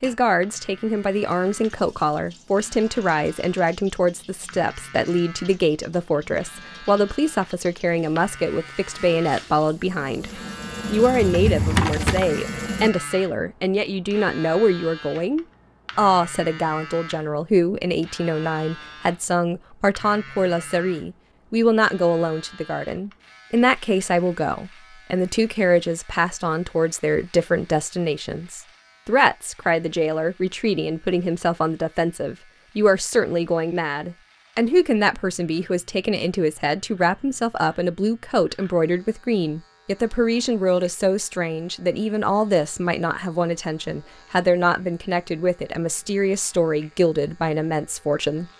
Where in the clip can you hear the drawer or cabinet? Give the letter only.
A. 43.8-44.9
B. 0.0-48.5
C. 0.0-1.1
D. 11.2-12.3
D.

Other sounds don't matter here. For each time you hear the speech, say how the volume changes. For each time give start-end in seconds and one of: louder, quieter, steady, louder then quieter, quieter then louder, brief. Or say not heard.
0.0-48.5 steady.